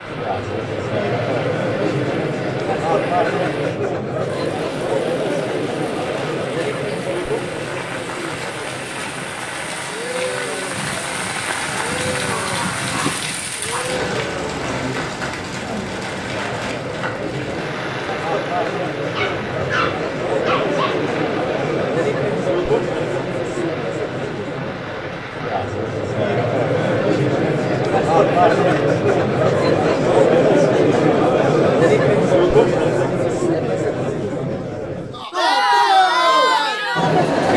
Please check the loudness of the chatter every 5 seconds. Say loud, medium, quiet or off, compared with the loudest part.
medium, medium, quiet, medium, medium, loud, loud, loud.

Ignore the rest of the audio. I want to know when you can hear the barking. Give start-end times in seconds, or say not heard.
12.2-13.9, 19.1-20.9.